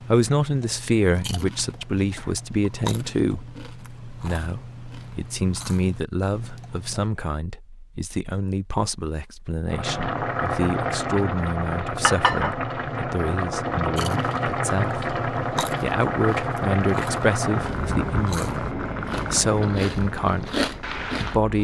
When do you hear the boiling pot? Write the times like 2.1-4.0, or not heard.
9.7-21.5.